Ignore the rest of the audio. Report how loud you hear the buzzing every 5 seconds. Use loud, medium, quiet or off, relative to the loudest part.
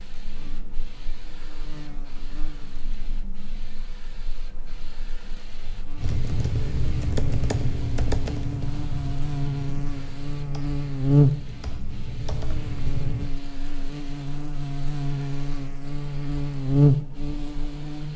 quiet, medium, loud, loud.